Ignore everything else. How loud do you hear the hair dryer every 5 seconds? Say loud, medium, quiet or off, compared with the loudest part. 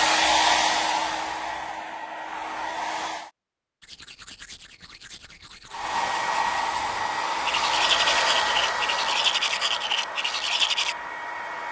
loud, loud, medium.